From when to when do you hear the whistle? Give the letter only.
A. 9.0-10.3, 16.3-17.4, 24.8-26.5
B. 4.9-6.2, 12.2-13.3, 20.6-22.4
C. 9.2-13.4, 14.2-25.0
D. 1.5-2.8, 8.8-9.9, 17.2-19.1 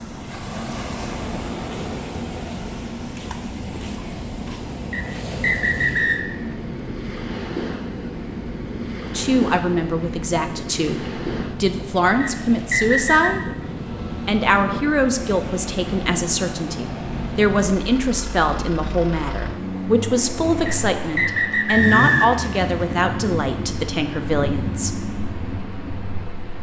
B.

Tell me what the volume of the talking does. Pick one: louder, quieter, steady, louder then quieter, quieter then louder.
steady.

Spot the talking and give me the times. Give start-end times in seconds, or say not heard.
9.2-13.4, 14.2-25.0.